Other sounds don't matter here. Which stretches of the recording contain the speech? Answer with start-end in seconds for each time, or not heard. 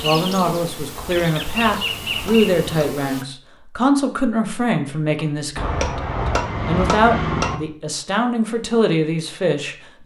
0.0-6.0, 6.7-10.0.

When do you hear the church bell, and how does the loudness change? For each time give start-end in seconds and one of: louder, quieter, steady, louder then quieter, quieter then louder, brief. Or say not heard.
not heard.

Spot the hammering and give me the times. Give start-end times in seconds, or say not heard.
0.9-3.0, 5.5-7.6.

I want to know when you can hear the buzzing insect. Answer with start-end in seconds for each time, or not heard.
0.0-3.2.